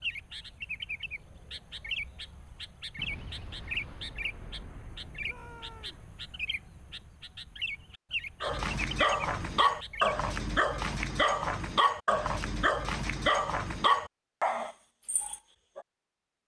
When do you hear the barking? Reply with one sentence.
The barking can be heard from 8.4 to 15.8 s.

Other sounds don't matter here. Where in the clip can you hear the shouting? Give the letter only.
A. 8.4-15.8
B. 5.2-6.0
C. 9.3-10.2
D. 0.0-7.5
B.